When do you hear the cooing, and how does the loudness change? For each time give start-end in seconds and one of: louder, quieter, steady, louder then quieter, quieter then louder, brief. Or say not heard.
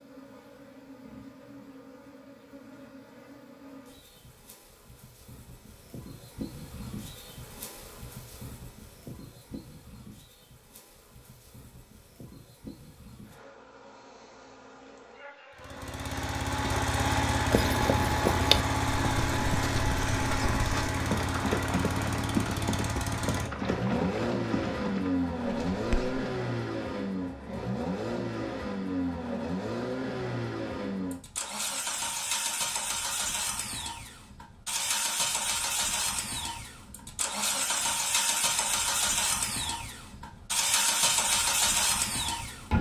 not heard.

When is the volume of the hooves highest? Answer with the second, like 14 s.
18 s.